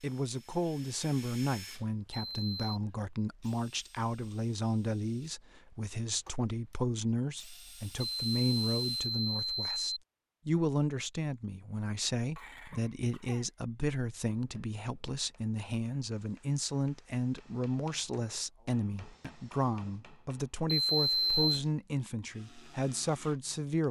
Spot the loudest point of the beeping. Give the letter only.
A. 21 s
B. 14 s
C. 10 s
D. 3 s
A.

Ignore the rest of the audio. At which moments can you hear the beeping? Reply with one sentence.
The beeping can be heard from 2.2 to 2.8 s, from 8.0 to 10.0 s and from 20.6 to 21.6 s.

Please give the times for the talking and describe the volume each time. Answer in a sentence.
The talking can be heard from 0.0 to 23.8 s, at a steady volume.